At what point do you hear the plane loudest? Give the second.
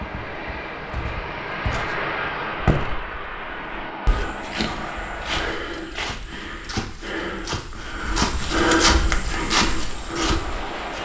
2 s.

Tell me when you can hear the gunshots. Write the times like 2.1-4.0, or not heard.
not heard.